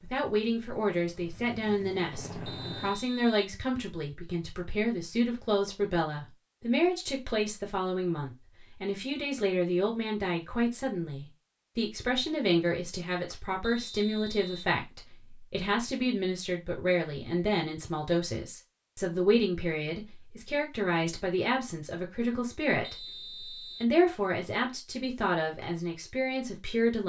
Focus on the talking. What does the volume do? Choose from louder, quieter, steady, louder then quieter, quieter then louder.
steady.